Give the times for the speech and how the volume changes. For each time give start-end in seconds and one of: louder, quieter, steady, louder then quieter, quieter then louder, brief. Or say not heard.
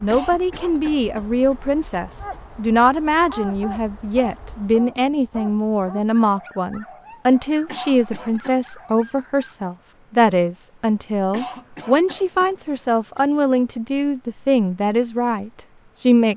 0.0-16.3 steady.